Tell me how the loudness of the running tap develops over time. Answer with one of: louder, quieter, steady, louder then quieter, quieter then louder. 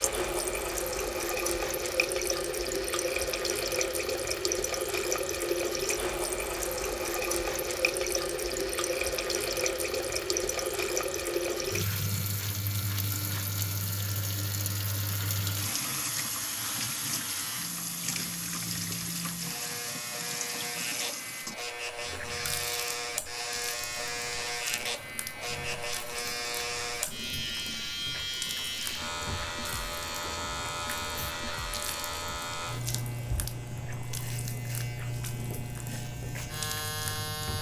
quieter.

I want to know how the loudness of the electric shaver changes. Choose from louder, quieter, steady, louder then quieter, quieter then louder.
louder.